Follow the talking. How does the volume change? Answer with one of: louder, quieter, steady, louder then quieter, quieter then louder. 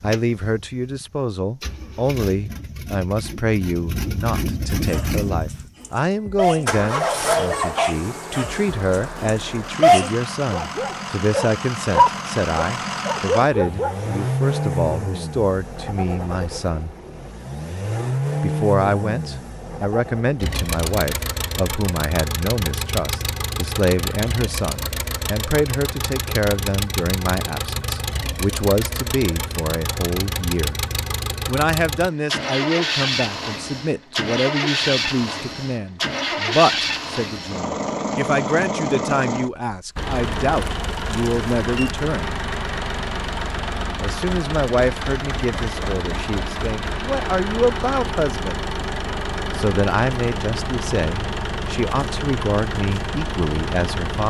steady.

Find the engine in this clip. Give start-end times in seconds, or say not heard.
0.0-54.2.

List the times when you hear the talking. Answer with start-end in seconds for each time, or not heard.
0.0-16.9, 18.4-30.8, 31.4-42.4, 44.0-48.6, 49.5-54.2.